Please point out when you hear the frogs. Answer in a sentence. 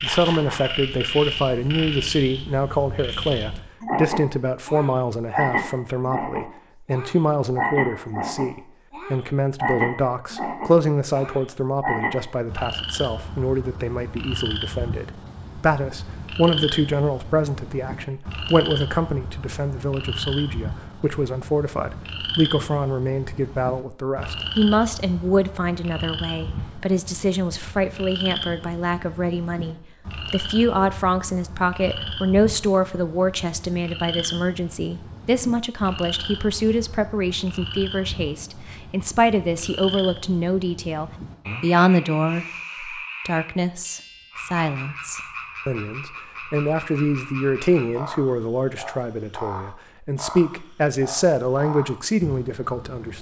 You can hear the frogs from 0.0 to 53.1 s.